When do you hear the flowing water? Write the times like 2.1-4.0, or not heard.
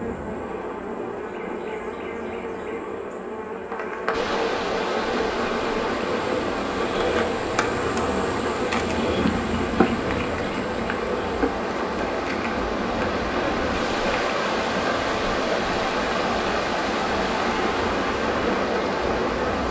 4.1-19.6.